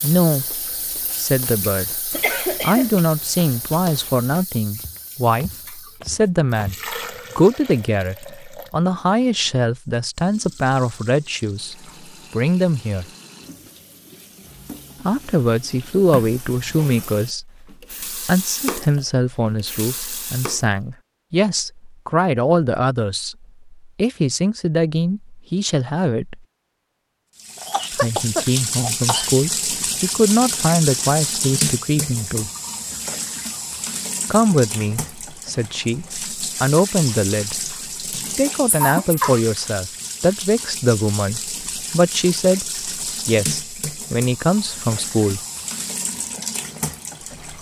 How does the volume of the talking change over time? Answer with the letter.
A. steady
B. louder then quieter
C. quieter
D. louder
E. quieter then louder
A.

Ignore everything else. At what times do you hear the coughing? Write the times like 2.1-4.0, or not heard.
2.1-3.0, 27.6-29.3, 38.1-39.4.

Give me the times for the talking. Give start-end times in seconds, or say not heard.
0.0-13.1, 15.0-26.4, 27.9-32.5, 34.3-45.4.